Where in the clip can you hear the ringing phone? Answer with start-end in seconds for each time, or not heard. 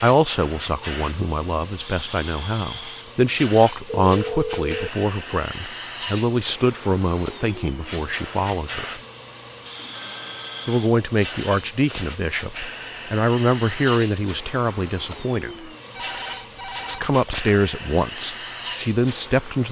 4.1-4.9, 9.8-10.8, 15.9-17.6.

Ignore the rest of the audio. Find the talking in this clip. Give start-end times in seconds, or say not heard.
0.0-8.8, 10.7-15.7, 16.9-19.6.